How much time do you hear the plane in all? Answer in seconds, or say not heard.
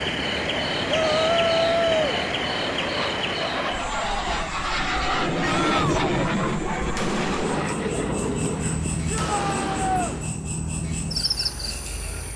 9 s.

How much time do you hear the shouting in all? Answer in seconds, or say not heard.
3 s.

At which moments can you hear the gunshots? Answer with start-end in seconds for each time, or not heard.
6.8-10.3.